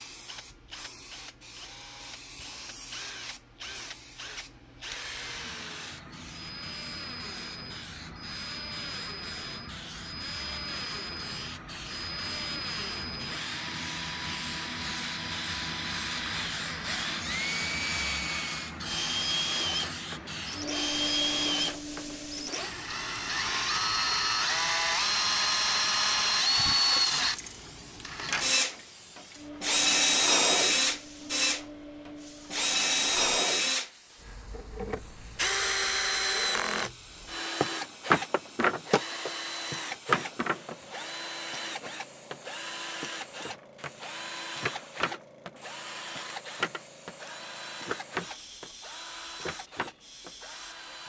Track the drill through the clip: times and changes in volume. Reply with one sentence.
The drill can be heard from 0.2 to 51.0 s, getting louder then quieter.